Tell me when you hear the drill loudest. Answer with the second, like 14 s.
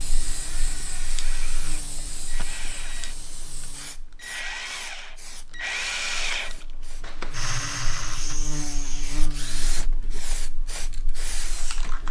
6 s.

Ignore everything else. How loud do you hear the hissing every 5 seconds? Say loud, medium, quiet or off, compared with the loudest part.
loud, medium, loud.